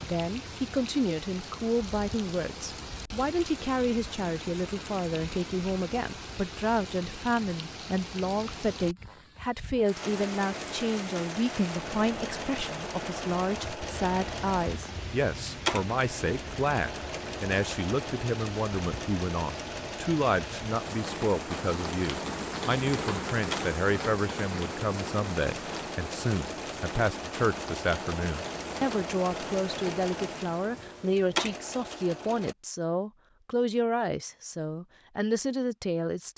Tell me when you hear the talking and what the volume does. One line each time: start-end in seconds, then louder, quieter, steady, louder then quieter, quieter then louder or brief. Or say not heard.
0.0-36.3 steady.